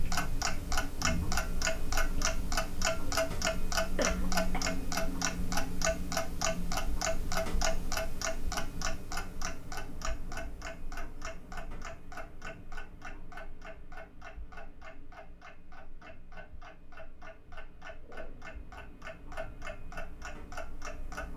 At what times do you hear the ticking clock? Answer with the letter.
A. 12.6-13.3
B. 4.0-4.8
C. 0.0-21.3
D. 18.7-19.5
C.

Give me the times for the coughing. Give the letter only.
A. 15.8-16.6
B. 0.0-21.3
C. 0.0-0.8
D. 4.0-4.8
D.